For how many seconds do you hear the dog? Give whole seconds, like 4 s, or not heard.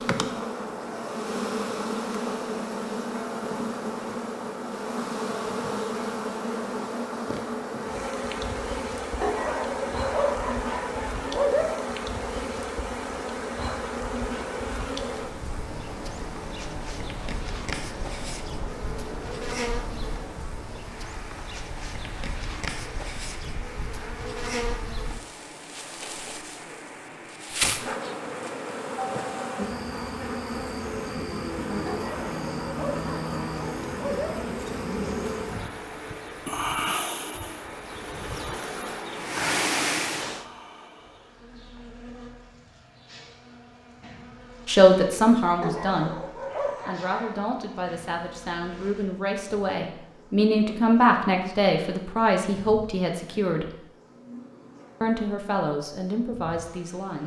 7 s.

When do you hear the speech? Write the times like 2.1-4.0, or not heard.
44.6-46.2, 46.9-53.6, 55.0-57.2.